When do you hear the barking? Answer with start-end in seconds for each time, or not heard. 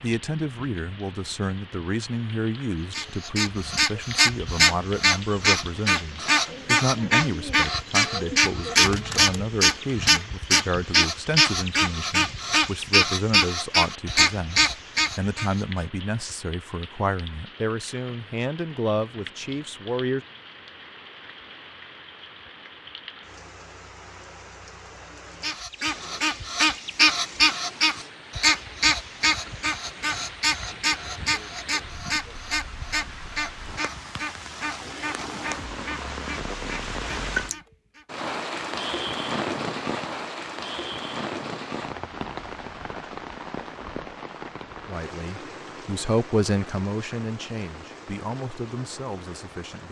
not heard.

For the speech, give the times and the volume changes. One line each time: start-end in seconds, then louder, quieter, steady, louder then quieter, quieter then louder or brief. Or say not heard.
0.0-20.2 steady
44.9-49.8 louder then quieter.